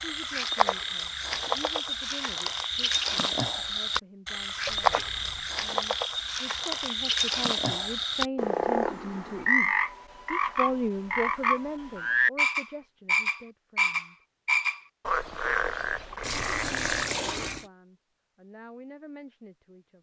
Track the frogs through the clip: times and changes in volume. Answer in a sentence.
You can hear the frogs from 0.0 to 17.1 s, at a steady volume.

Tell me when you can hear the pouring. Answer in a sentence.
You can hear the pouring from 4.7 to 5.5 s and from 16.2 to 17.7 s.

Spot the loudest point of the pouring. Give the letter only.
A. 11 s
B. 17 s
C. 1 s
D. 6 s
B.